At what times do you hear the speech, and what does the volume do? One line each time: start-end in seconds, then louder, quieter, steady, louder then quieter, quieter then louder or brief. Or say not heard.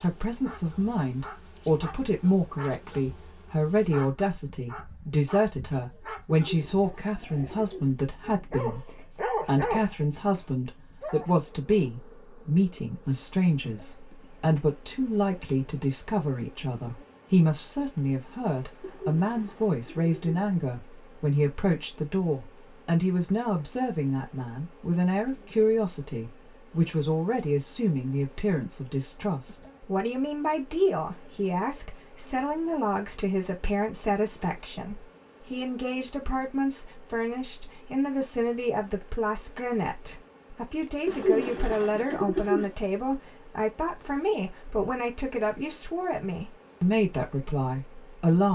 0.0-48.5 steady.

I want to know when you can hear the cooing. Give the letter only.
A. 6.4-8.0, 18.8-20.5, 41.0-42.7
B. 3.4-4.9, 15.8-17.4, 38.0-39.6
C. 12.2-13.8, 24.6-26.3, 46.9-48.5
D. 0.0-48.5
A.